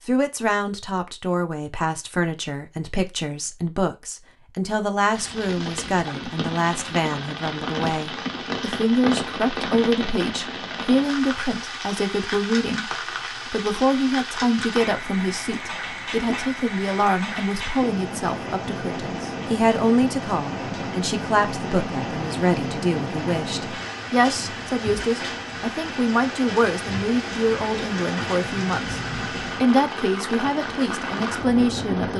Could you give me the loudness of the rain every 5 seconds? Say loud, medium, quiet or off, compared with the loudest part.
off, loud, loud, loud, loud, loud, loud.